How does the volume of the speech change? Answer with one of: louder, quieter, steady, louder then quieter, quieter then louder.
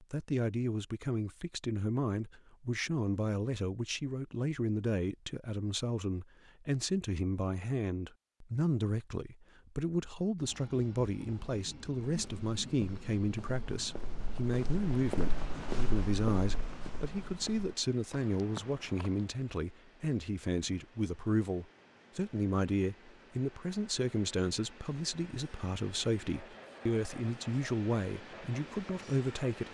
steady.